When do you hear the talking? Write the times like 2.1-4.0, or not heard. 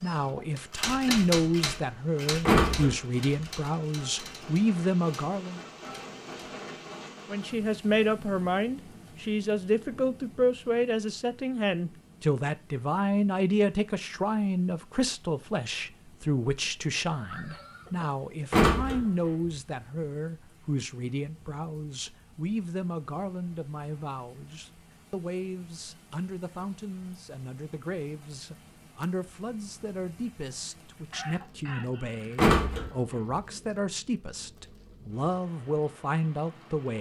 0.0-5.6, 7.2-36.9.